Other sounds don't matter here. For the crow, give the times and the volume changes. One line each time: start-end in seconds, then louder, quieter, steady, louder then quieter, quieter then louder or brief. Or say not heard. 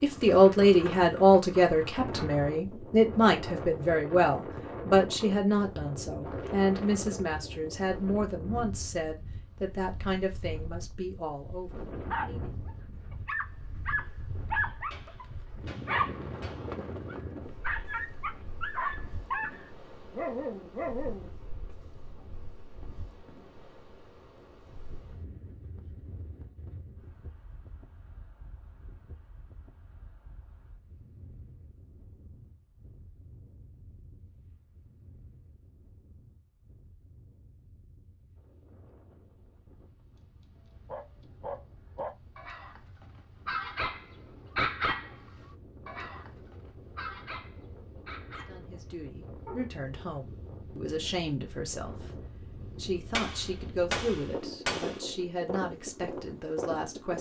not heard.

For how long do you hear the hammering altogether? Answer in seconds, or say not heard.
4 s.